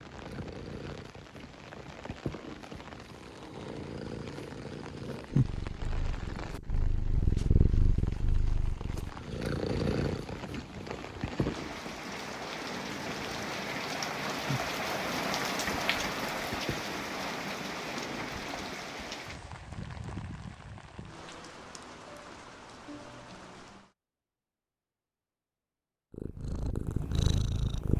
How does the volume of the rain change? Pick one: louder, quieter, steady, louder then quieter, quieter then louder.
louder then quieter.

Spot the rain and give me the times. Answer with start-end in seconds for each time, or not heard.
0.0-23.9.